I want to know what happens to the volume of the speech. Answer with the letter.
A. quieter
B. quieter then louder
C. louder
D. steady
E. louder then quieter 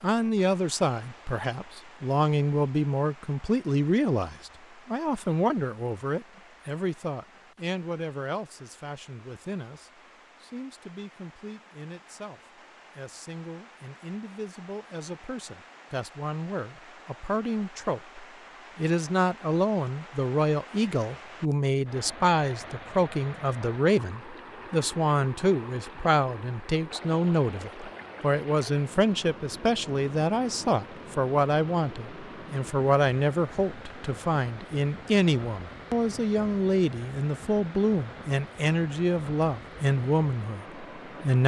B.